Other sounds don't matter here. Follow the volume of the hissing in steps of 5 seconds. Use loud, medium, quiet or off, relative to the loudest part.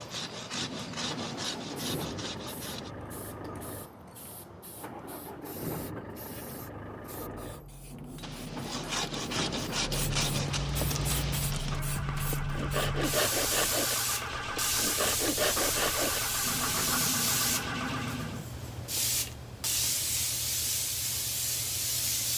quiet, quiet, loud, loud, loud.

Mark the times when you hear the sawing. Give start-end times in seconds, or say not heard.
0.0-2.9, 8.2-17.0.